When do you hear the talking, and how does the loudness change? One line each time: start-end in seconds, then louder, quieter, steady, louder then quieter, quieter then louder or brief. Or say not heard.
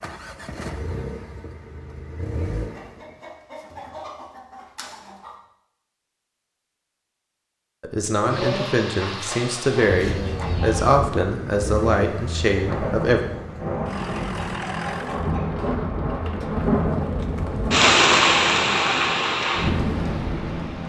7.8-13.2 steady.